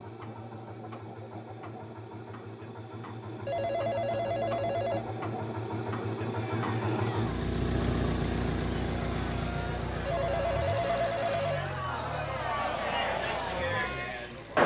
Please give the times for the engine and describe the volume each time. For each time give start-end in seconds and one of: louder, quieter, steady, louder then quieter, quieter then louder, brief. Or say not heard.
0.0-14.6 louder then quieter.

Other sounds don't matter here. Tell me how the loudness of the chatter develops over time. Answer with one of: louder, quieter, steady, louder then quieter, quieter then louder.
louder.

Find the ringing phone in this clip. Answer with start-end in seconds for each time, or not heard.
3.5-5.1, 10.1-11.7.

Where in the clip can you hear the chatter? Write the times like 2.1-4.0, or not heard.
6.3-14.6.